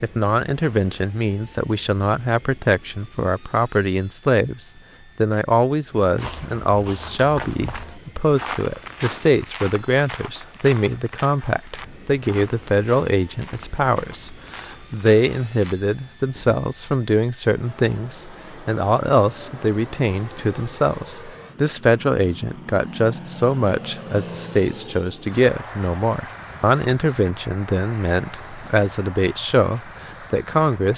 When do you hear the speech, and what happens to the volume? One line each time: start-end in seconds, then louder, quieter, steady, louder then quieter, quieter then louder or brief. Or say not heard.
0.0-30.9 steady.